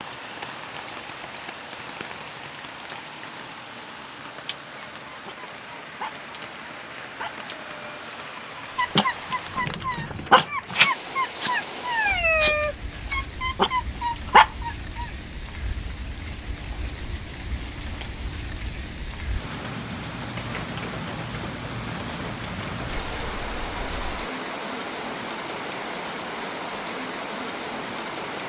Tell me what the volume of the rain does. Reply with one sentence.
The volume of the rain goes up.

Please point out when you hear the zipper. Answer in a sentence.
You can hear the zipper from 22.9 to 24.3 s.